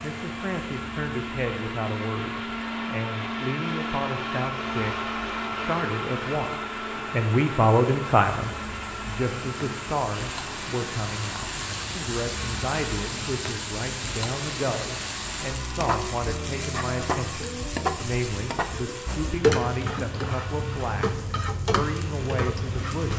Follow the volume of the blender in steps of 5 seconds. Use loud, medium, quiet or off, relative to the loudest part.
loud, loud, medium, medium, medium.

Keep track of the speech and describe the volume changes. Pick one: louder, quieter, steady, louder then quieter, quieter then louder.
louder then quieter.